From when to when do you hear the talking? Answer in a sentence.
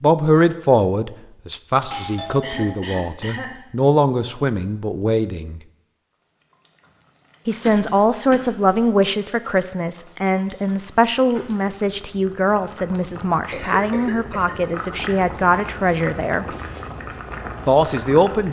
The talking can be heard from 0.0 to 5.6 s, from 7.5 to 16.4 s and from 17.6 to 18.4 s.